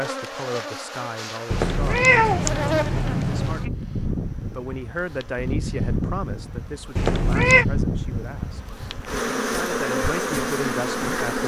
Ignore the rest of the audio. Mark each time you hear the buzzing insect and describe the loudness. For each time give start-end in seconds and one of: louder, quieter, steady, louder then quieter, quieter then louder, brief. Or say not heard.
0.0-11.4 louder.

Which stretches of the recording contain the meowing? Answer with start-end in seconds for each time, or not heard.
1.5-3.7, 7.0-7.7.